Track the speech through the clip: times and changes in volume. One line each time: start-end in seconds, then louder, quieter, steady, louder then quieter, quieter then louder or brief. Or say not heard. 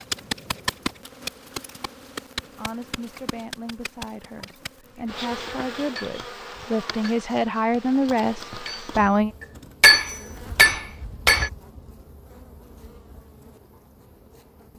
2.4-9.3 louder.